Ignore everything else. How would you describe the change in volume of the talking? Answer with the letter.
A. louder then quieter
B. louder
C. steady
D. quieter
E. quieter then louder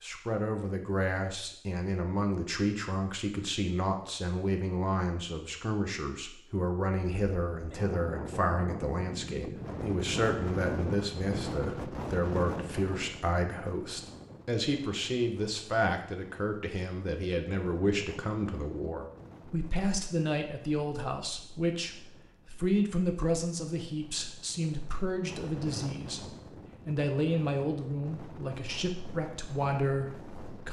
C.